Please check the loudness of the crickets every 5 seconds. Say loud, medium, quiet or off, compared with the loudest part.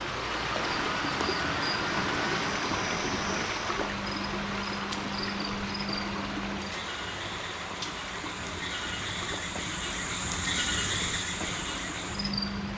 medium, medium, loud.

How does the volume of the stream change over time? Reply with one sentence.
The volume of the stream goes down.